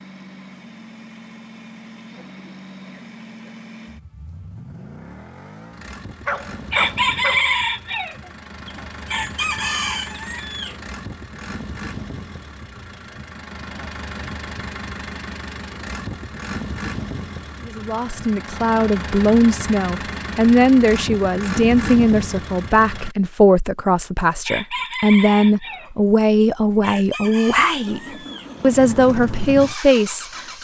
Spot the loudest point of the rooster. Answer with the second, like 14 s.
7 s.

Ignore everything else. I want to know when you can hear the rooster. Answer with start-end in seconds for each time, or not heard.
6.7-10.8, 24.4-28.5.